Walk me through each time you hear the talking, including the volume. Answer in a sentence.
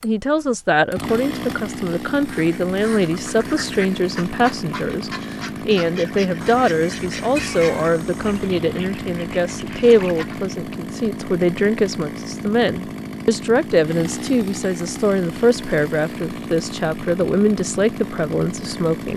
You can hear the talking from 0.0 to 19.1 s, at a steady volume.